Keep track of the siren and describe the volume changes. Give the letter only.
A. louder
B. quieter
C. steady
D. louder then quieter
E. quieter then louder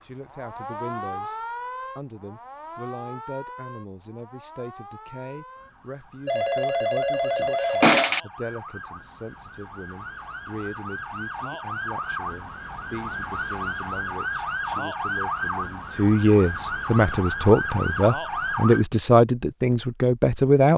E.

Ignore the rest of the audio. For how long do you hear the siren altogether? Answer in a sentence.
The siren can be heard for 19 seconds in total.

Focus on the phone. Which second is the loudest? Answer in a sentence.
The volume of the phone peaks at 8 seconds.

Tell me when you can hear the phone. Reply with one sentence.
You can hear the phone from 6.2 to 8.2 s.